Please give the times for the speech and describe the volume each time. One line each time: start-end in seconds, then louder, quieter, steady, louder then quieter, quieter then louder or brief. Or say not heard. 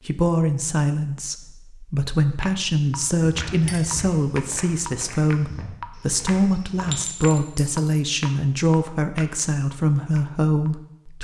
0.1-11.1 steady.